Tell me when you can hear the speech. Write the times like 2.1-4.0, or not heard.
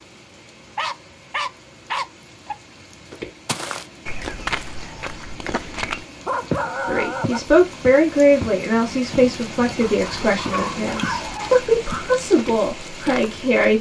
6.8-13.7.